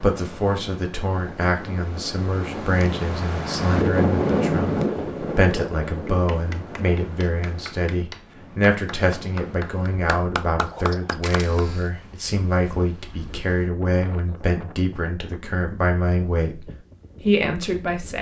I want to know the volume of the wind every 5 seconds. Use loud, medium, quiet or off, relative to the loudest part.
loud, medium, quiet, quiet.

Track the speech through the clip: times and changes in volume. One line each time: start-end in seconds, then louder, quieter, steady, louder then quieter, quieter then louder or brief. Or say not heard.
0.0-18.1 steady.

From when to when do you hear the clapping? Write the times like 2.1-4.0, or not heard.
6.0-11.7.